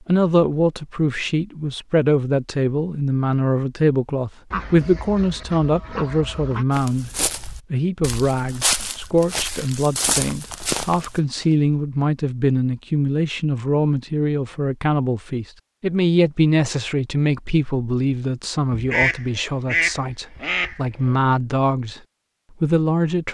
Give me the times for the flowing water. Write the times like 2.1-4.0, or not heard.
not heard.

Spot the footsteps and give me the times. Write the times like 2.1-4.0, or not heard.
6.7-11.8.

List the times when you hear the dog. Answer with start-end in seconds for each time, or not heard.
not heard.